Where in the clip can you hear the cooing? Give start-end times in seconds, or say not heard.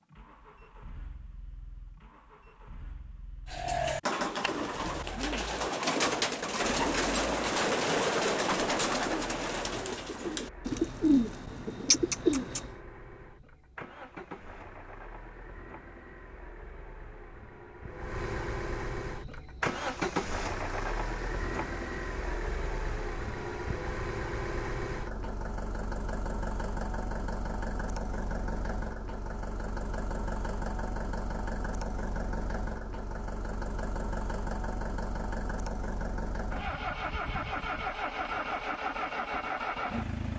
3.5-12.8.